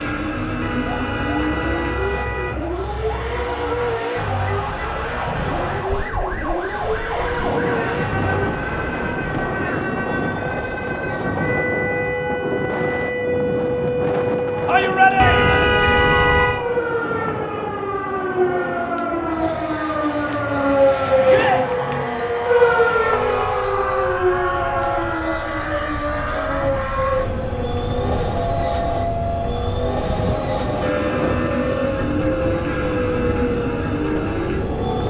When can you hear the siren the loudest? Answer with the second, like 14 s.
21 s.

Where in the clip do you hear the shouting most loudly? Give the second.
15 s.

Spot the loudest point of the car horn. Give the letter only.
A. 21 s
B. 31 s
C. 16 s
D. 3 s
C.